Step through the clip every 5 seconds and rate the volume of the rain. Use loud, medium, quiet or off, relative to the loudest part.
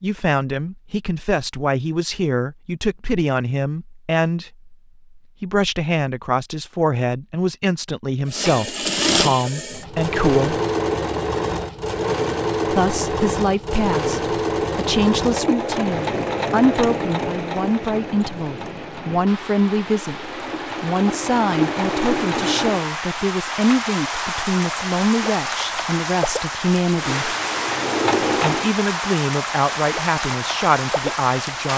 off, off, off, medium, loud, loud, loud.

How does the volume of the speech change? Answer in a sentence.
The loudness of the speech stays about the same.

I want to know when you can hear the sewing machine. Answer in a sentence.
You can hear the sewing machine from 8.2 to 22.9 s and from 26.9 to 28.7 s.